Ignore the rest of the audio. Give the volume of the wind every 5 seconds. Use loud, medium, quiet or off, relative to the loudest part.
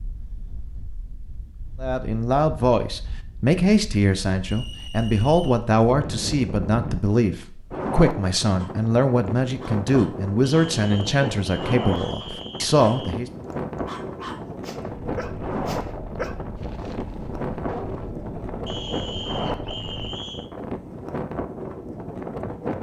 quiet, loud, loud, loud, loud.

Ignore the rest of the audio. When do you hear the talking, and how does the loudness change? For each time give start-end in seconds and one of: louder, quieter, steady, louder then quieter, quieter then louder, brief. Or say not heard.
1.8-13.3 steady.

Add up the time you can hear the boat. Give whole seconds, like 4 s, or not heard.
5 s.